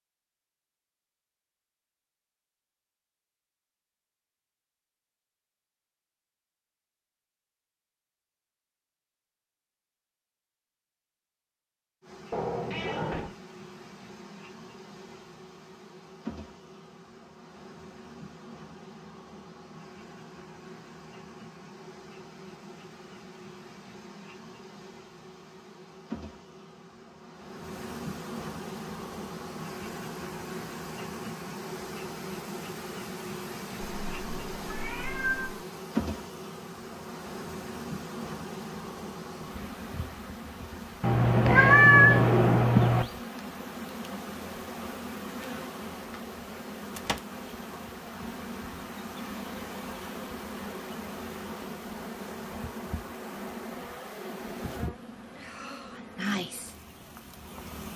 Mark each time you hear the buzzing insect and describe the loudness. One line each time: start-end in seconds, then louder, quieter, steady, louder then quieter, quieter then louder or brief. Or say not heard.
12.0-57.9 louder.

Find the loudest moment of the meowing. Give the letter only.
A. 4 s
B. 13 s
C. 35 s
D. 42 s
D.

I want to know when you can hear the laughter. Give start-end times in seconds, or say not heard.
not heard.